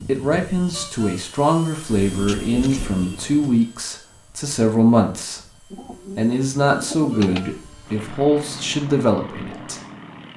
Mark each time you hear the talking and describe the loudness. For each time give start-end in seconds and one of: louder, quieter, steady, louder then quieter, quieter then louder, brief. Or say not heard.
0.0-9.8 steady.